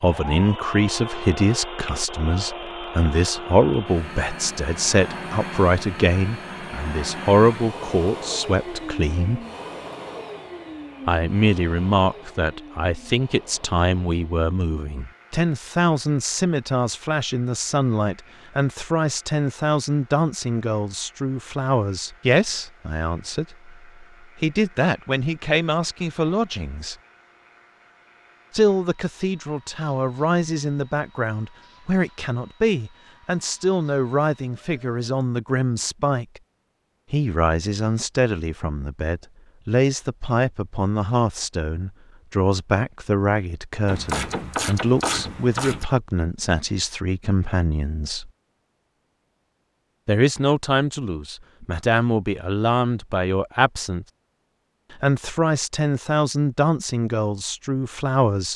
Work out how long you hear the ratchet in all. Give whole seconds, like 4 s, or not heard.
2 s.